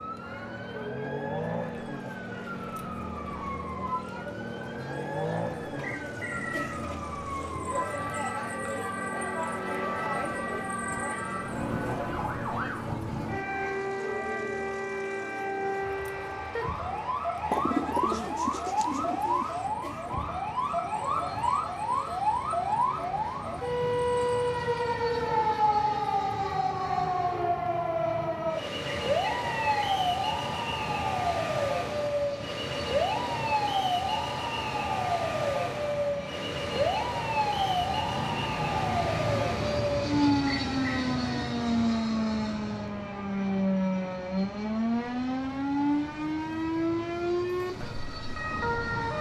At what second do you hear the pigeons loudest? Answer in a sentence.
The loudest moment of the pigeons is at 18 seconds.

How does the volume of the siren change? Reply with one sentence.
The loudness of the siren goes up.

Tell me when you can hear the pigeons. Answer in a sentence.
You can hear the pigeons from 17.5 to 19.5 s.